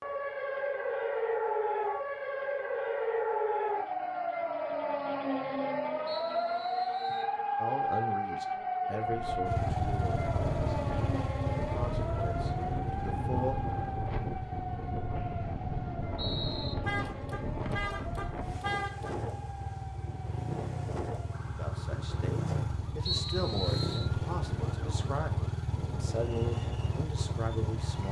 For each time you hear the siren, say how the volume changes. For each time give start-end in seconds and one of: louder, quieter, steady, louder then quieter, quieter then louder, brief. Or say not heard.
0.0-28.0 quieter.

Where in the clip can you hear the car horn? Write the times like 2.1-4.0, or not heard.
16.8-19.1.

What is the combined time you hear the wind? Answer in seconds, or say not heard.
19 s.